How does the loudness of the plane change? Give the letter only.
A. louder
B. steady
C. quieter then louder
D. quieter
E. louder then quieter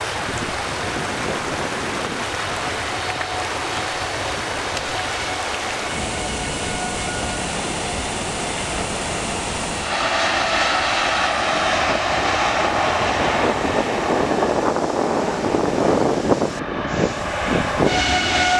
A.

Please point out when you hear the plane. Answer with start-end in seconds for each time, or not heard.
0.0-18.5.